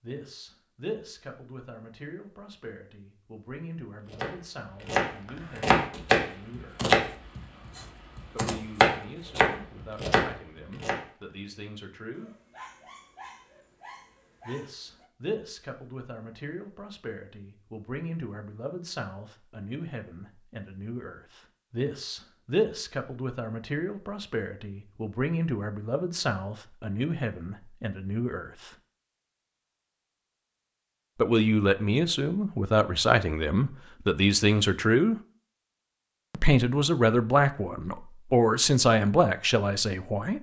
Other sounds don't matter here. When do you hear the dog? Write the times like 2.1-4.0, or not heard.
12.1-15.1.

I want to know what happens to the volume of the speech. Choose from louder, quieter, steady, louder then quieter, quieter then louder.
louder.